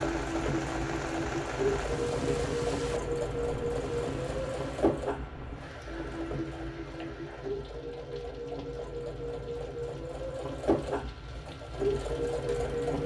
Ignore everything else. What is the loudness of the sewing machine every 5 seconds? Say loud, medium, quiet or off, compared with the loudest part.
loud, medium, loud.